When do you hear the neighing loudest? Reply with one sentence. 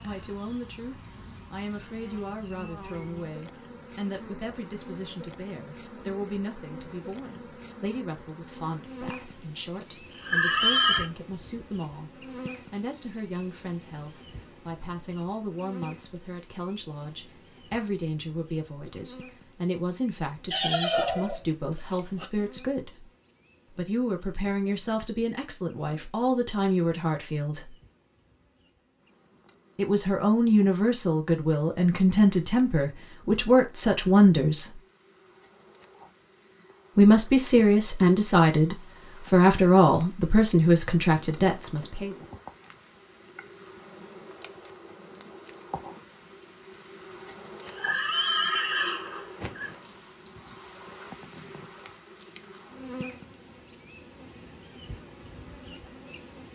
The volume of the neighing peaks at 11 seconds.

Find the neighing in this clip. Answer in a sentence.
You can hear the neighing from 9.8 to 11.1 s, from 20.5 to 21.4 s and from 47.3 to 49.7 s.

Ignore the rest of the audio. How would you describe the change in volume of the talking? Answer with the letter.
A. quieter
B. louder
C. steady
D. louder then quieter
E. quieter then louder
B.